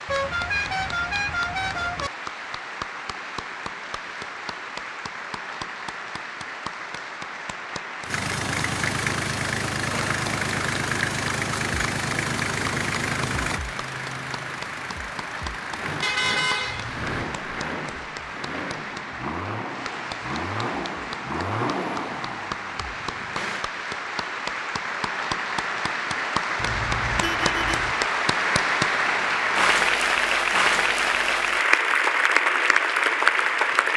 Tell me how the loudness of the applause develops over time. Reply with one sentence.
The volume of the applause goes up.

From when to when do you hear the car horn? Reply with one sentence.
You can hear the car horn from 0.1 to 2.1 s, from 16.0 to 17.2 s and from 26.6 to 28.0 s.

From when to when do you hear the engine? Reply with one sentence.
The engine can be heard from 8.1 to 23.6 s.